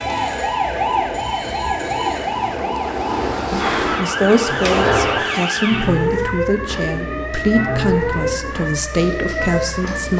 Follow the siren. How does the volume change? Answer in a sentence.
The loudness of the siren stays about the same.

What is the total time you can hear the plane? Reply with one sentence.
The plane can be heard for 2 seconds in total.